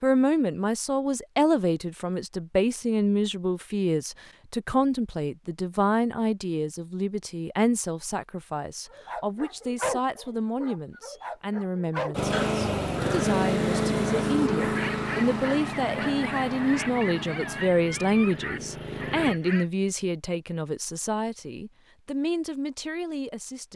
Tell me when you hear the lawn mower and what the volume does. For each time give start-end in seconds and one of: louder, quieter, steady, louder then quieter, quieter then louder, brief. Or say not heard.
12.1-19.4 quieter.